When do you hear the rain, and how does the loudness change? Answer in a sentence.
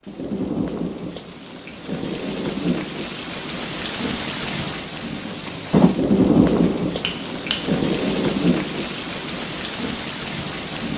The rain can be heard from 0.0 to 10.9 s, getting louder then quieter.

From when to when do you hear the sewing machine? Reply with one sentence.
You can't hear the sewing machine here.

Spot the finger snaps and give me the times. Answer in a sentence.
You can hear the finger snaps from 6.6 to 7.6 s.